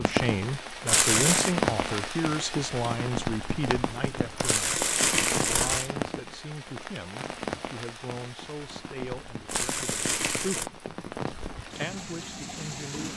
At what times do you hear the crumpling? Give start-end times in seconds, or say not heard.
0.8-1.6, 4.4-5.9, 9.4-10.7.